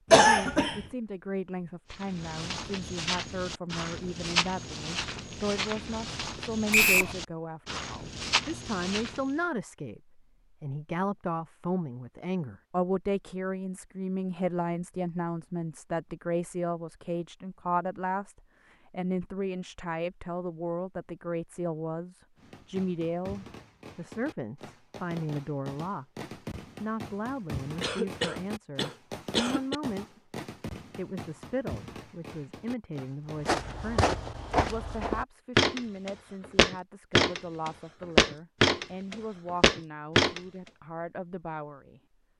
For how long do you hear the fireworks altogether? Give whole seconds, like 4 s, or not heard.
11 s.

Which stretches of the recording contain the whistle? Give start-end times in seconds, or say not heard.
6.7-7.2.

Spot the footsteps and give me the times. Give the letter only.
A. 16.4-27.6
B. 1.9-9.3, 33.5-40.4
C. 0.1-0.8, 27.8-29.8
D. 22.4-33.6
B.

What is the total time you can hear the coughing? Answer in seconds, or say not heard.
3 s.